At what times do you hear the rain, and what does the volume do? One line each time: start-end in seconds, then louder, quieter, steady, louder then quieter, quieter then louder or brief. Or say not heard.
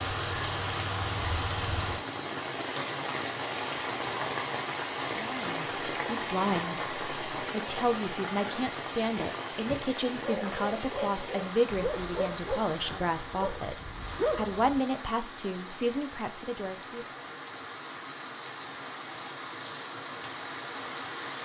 0.0-21.3 quieter.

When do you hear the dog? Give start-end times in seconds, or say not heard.
9.7-14.8.